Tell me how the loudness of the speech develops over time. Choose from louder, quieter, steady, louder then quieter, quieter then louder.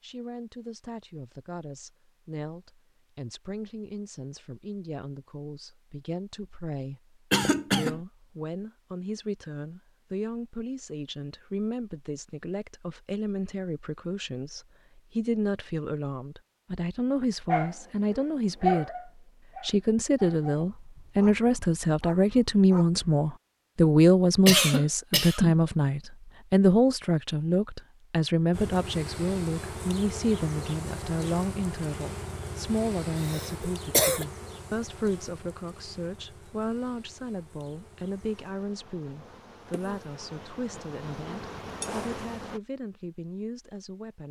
louder then quieter.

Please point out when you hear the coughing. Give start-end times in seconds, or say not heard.
7.3-8.0, 24.4-25.6, 33.1-34.2.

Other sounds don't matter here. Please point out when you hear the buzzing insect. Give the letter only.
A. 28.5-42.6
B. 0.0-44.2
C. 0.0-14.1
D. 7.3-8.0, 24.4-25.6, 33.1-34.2
A.